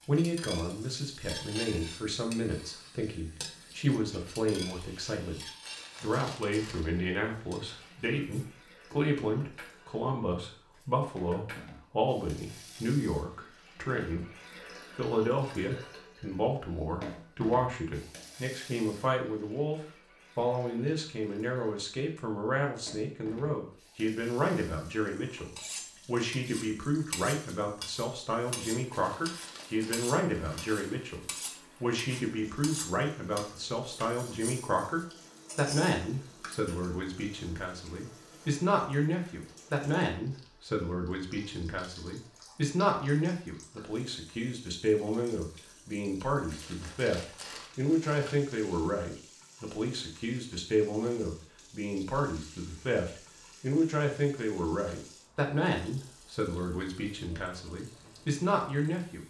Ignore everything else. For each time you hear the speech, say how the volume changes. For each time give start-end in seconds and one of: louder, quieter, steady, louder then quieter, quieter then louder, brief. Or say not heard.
0.1-59.2 steady.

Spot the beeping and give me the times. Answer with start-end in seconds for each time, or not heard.
not heard.